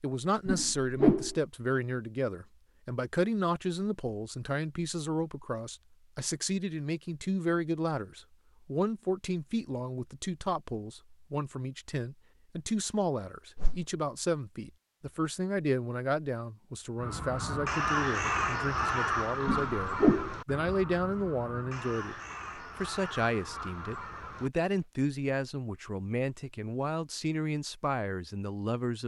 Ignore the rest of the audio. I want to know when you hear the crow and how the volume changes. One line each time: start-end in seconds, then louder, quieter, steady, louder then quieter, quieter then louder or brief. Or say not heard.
16.9-24.9 quieter.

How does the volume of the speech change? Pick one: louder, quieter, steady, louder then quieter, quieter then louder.
steady.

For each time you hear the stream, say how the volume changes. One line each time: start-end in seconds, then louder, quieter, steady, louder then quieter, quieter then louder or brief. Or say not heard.
not heard.